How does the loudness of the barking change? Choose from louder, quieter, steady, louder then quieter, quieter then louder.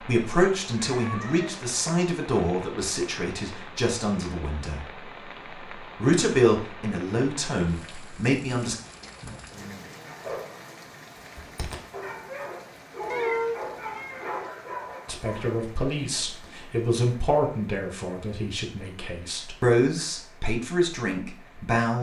louder.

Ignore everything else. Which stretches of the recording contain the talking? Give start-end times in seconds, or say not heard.
0.0-5.0, 5.8-8.8, 15.1-21.9.